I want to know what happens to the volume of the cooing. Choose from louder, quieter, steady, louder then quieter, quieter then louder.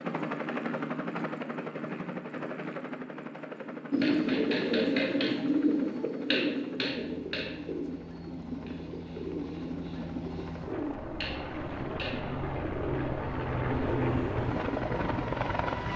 quieter.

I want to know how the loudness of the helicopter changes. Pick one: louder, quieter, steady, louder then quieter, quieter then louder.
quieter then louder.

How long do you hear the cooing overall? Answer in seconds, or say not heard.
11 s.